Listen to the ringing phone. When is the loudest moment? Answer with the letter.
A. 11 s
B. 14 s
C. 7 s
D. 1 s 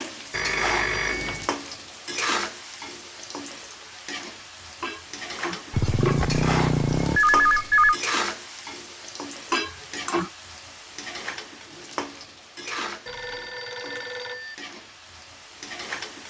C.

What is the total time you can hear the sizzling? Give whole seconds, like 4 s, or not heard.
16 s.